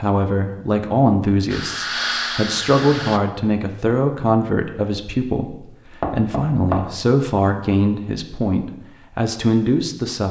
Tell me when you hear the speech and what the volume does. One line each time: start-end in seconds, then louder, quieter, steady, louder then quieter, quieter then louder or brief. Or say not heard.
0.0-10.2 steady.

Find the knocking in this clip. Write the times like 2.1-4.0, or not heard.
6.0-7.0.